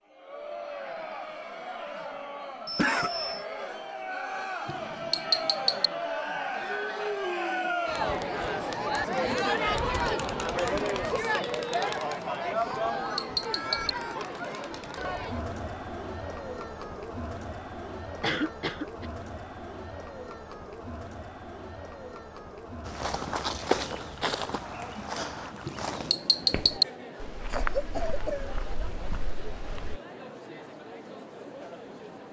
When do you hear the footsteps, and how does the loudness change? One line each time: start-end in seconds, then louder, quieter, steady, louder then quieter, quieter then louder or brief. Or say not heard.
22.9-30.0 quieter.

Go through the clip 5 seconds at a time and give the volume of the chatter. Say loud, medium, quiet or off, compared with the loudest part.
medium, loud, loud, medium, quiet, quiet, quiet.